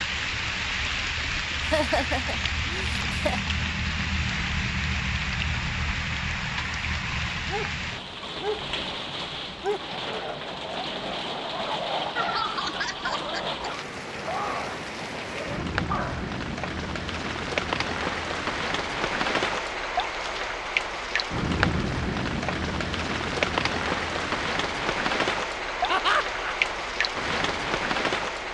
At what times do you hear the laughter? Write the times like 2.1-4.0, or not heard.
1.6-3.5, 12.2-13.7, 25.9-26.6.